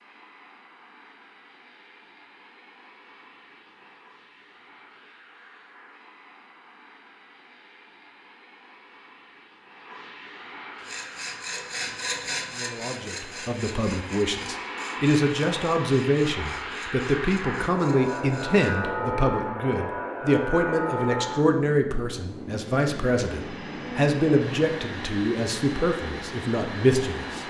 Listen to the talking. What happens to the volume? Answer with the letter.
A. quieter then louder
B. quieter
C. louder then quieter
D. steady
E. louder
D.